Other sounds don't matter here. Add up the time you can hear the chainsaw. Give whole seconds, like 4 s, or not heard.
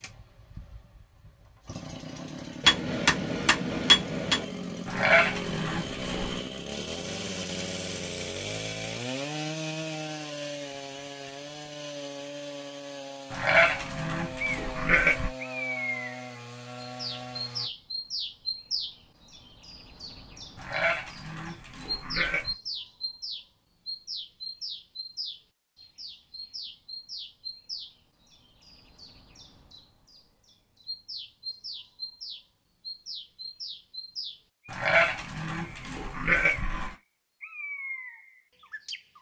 18 s.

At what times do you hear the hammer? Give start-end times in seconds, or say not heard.
2.6-4.5.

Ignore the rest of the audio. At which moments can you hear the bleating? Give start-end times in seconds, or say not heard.
4.8-6.3, 13.3-15.3, 20.6-22.6, 34.6-37.0.